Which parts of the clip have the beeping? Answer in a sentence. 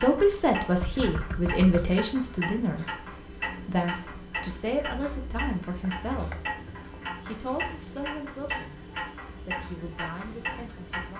You can't hear the beeping here.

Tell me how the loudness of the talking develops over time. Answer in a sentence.
The volume of the talking goes down.